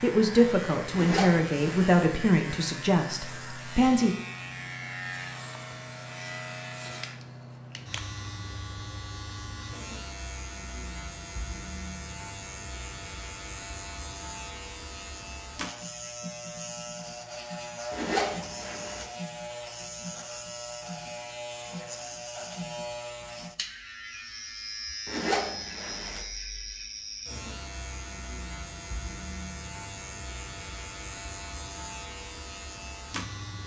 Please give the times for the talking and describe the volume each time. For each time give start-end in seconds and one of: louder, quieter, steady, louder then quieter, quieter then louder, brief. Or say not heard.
0.0-4.2 quieter.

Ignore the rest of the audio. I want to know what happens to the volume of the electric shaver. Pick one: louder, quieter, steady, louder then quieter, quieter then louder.
steady.